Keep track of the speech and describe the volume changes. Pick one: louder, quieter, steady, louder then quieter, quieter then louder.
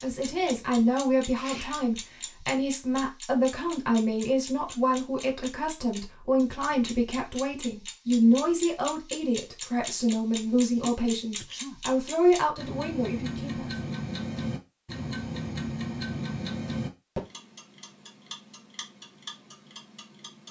steady.